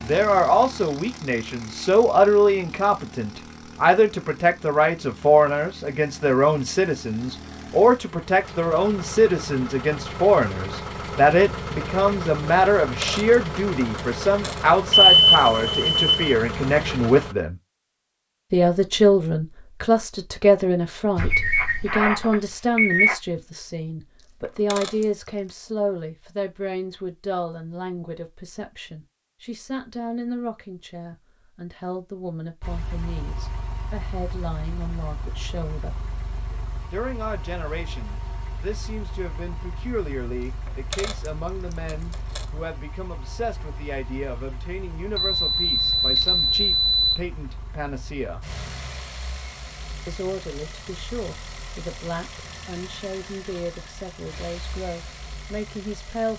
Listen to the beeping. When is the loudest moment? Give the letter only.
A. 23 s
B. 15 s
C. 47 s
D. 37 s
B.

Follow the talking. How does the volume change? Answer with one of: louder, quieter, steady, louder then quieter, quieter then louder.
quieter.